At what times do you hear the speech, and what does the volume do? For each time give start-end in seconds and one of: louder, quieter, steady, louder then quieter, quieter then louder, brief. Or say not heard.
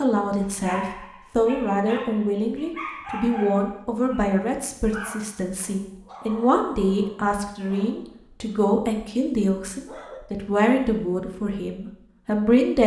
0.0-12.8 steady.